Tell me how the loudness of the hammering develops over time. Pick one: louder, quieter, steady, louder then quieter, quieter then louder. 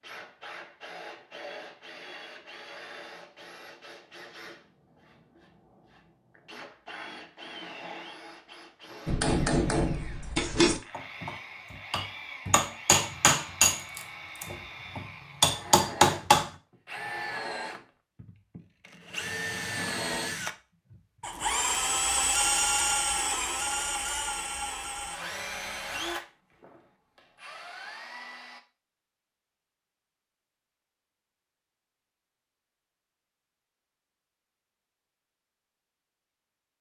quieter then louder.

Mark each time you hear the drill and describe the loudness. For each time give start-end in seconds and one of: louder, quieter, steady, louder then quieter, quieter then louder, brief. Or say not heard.
0.0-28.6 louder.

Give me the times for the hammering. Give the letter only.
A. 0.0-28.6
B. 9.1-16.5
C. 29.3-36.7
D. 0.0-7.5
B.